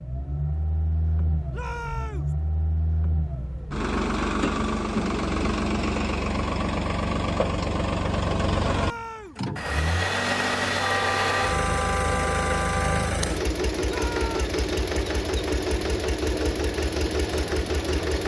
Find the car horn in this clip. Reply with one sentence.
You can hear the car horn from 10.8 to 13.2 s.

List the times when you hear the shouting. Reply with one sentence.
The shouting can be heard from 1.5 to 2.4 s, from 8.6 to 9.4 s and from 13.8 to 14.4 s.